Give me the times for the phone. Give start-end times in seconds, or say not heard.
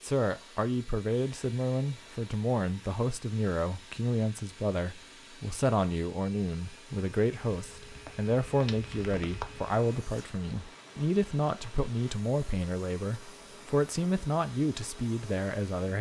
not heard.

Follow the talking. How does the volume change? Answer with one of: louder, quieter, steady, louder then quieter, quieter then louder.
steady.